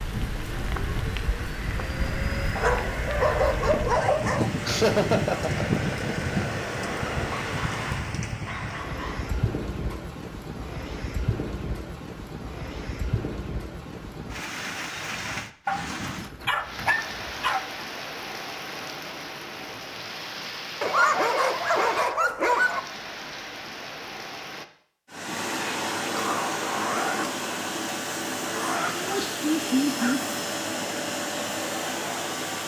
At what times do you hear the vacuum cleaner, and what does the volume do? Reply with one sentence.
You can hear the vacuum cleaner from 0.2 to 8.2 s, getting louder; and from 25.1 to 32.6 s, at a steady volume.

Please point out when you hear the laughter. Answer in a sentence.
The laughter can be heard from 4.7 to 5.8 s and from 28.9 to 30.2 s.